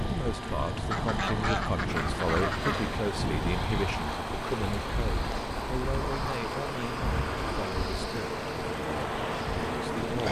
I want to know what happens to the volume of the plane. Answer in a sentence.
The volume of the plane stays about the same.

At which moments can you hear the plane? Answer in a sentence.
The plane can be heard from 0.0 to 10.2 s.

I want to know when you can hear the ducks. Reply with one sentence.
The ducks can be heard from 0.9 to 2.9 s.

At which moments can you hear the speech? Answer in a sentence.
You can hear the speech from 0.0 to 10.2 s.